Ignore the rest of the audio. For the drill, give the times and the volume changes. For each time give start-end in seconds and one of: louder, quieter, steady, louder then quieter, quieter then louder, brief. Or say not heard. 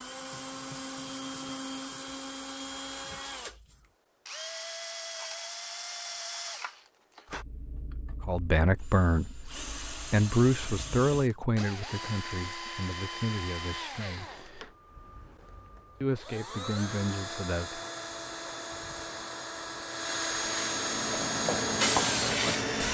0.0-22.8 louder.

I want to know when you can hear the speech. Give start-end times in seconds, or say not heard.
8.2-14.3, 16.0-17.8.